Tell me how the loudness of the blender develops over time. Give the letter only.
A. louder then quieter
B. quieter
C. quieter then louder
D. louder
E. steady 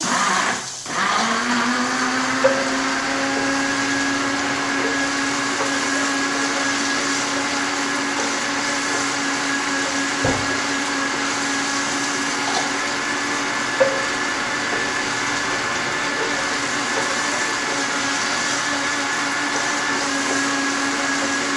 E.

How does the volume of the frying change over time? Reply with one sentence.
The loudness of the frying stays about the same.